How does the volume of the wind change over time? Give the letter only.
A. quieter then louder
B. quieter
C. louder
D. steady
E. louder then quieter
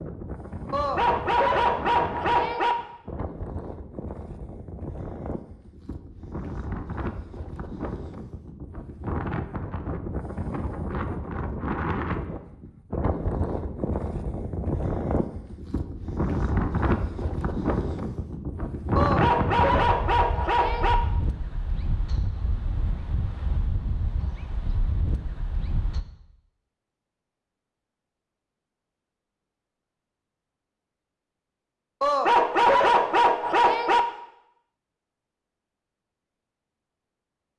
E.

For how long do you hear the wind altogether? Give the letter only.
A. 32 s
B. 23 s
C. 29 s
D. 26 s
D.